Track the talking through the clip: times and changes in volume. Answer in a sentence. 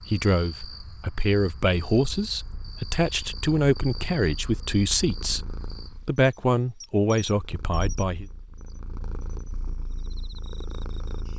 You can hear the talking from 0.1 to 8.2 s, at a steady volume.